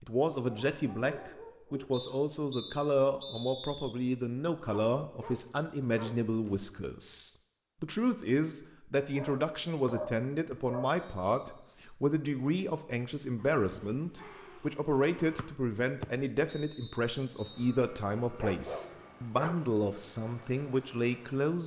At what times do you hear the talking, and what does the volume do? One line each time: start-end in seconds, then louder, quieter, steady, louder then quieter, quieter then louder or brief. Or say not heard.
0.0-21.6 steady.